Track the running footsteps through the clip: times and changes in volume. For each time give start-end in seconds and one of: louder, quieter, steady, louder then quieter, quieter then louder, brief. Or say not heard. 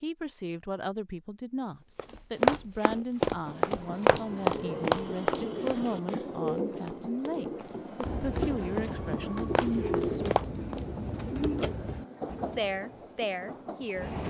1.9-10.8 quieter then louder.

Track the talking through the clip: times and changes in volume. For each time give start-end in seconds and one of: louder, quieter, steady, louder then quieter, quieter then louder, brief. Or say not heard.
0.0-10.3 steady
12.6-14.2 brief.